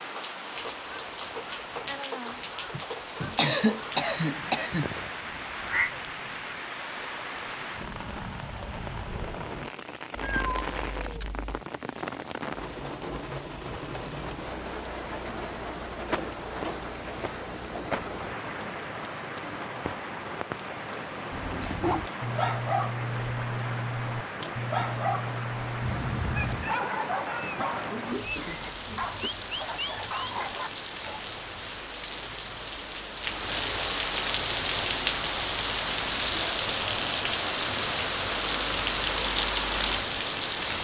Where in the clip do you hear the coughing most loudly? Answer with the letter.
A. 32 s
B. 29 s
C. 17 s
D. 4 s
D.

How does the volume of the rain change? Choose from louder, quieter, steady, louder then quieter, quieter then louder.
louder.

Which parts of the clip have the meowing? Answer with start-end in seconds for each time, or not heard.
10.2-11.7, 25.8-26.8.